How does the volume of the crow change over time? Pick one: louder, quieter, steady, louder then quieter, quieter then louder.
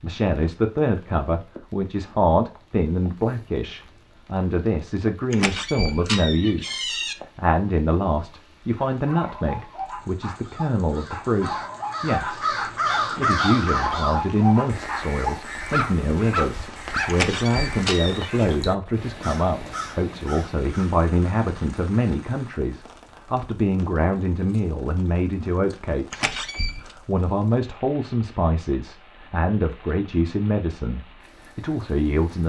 louder then quieter.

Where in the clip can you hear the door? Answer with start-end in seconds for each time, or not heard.
5.3-7.2, 17.1-18.4, 26.1-26.9.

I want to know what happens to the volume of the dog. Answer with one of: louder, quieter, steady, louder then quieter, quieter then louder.
louder.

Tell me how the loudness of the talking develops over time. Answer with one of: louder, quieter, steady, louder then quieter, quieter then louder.
steady.